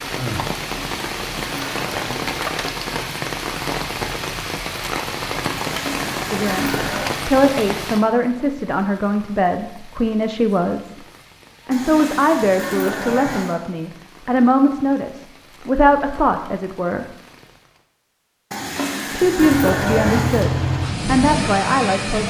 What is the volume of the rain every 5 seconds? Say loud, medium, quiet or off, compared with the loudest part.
loud, loud, quiet, quiet, off.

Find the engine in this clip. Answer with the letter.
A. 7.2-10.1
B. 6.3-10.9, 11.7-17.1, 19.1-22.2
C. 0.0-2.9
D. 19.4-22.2
D.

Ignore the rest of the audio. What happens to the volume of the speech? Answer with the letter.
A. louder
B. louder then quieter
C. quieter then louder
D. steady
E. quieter
D.